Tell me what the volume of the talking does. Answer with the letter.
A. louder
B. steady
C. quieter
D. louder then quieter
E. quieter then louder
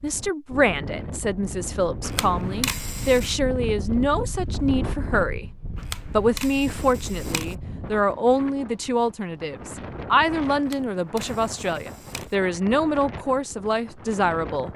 B.